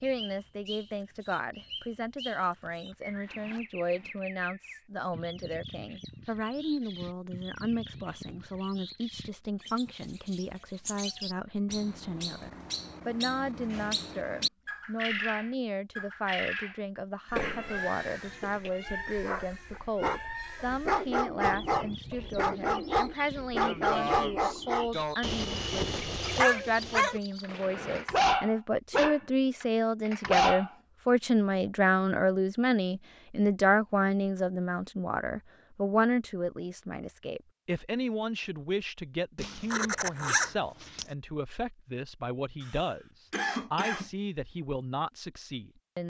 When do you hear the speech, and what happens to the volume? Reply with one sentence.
You can hear the speech from 0.0 to 46.0 s, getting louder then quieter.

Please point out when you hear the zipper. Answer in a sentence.
The zipper can be heard from 2.6 to 4.2 s, from 27.4 to 28.1 s and from 39.4 to 41.0 s.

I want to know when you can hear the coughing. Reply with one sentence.
You can hear the coughing from 17.3 to 18.7 s and from 42.6 to 44.1 s.